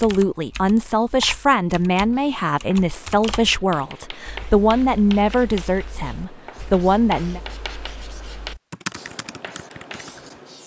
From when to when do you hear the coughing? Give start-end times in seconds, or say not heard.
not heard.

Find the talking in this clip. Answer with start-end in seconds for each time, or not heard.
0.0-7.4.